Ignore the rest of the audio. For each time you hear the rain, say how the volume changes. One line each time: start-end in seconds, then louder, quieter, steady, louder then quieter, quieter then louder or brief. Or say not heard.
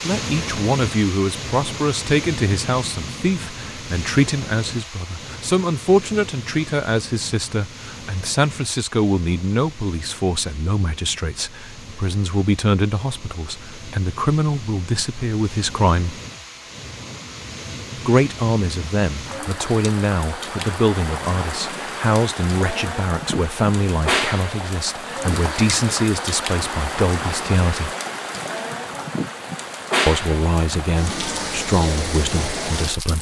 0.0-33.1 quieter then louder.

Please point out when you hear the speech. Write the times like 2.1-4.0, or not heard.
0.0-16.2, 18.1-27.9, 30.1-33.1.